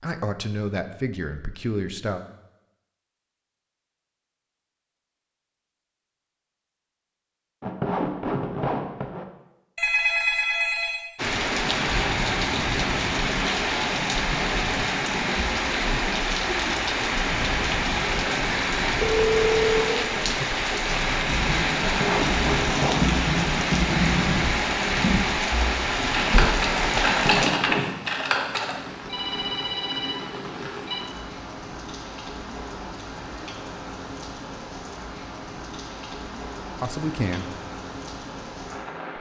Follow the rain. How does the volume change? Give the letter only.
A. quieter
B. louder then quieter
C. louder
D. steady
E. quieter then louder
A.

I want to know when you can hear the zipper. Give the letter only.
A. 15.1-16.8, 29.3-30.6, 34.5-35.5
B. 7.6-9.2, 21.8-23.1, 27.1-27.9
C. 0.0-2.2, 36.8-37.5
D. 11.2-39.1
B.